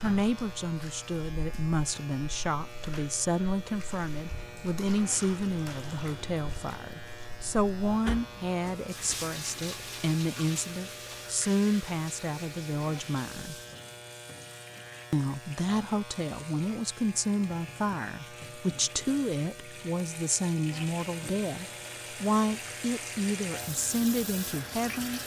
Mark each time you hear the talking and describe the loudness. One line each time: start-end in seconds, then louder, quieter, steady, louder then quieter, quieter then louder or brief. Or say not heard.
0.0-13.6 steady
15.1-25.2 steady.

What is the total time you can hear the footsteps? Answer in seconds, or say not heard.
not heard.